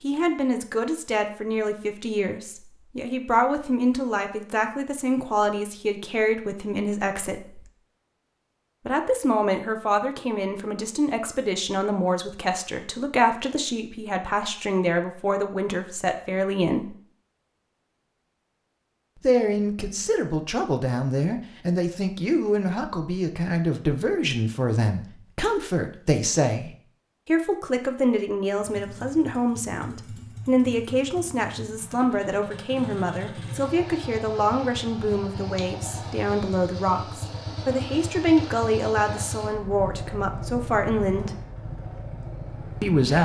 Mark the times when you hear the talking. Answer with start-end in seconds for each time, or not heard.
0.0-7.7, 8.8-16.9, 19.2-41.3, 42.8-43.2.